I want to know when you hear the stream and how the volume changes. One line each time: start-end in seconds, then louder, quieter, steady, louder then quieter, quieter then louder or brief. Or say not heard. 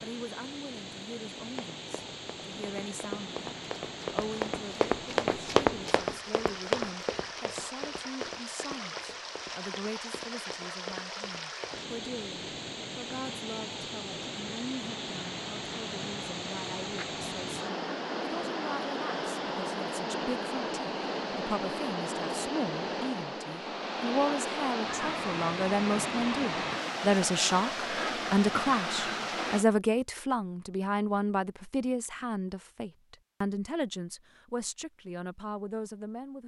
0.0-29.6 louder.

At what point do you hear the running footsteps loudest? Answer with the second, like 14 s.
6 s.